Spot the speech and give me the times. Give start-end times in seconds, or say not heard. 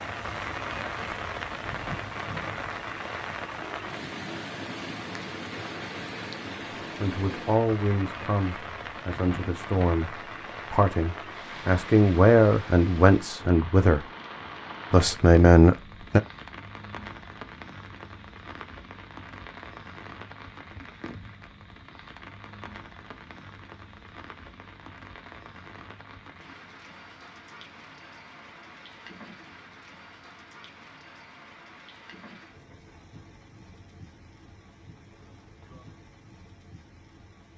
7.0-14.1, 14.9-16.2.